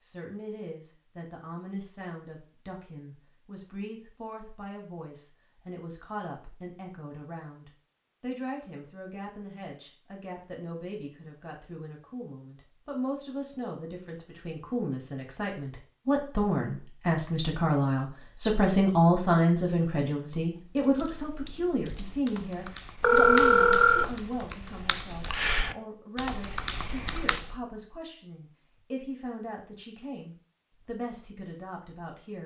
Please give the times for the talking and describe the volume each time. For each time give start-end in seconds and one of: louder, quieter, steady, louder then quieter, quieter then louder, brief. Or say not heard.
0.0-32.4 louder then quieter.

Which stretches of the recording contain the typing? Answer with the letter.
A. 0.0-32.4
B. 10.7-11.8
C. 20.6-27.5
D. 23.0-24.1
C.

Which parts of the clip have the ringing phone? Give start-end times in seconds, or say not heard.
23.0-24.1.